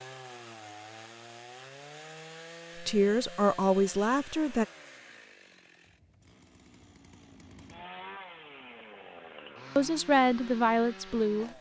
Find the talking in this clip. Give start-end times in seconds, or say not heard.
2.8-4.7, 9.8-11.5.